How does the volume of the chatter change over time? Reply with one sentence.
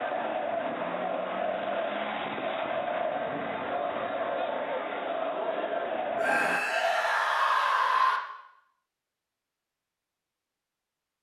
The loudness of the chatter stays about the same.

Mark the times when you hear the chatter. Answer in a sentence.
You can hear the chatter from 0.0 to 6.6 s.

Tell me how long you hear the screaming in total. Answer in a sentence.
You can hear the screaming for 2 seconds altogether.